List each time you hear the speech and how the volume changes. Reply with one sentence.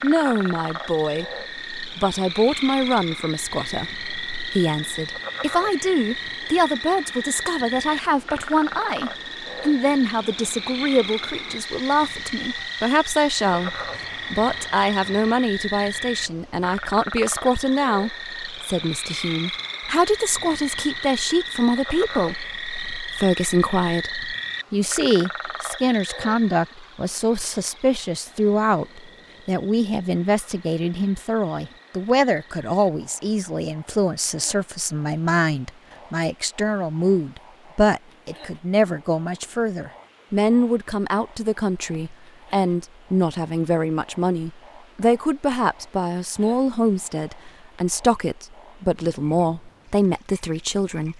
The speech can be heard from 0.0 to 51.1 s, at a steady volume.